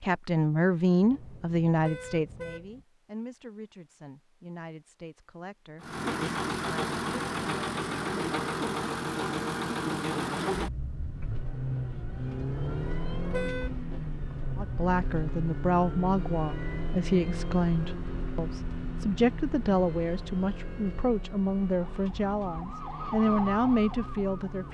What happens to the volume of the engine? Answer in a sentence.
The loudness of the engine goes down.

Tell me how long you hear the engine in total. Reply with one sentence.
You can hear the engine for 19 seconds altogether.